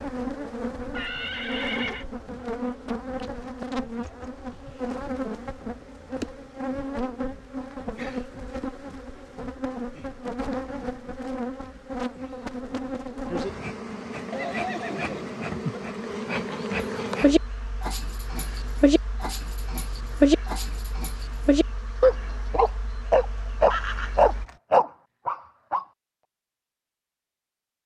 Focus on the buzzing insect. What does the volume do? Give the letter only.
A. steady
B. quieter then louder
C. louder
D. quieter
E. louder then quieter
D.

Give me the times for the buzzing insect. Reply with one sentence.
You can hear the buzzing insect from 0.0 to 24.4 s.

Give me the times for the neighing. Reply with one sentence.
You can hear the neighing from 0.9 to 2.0 s, from 14.3 to 15.8 s and from 23.7 to 24.6 s.